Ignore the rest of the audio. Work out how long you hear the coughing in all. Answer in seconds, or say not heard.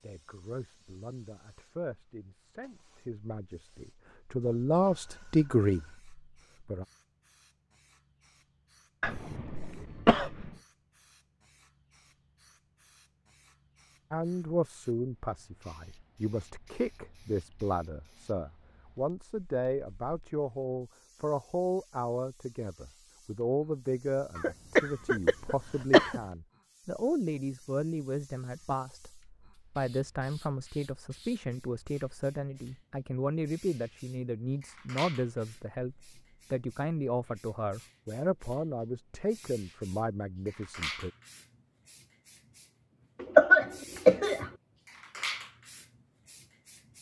5 s.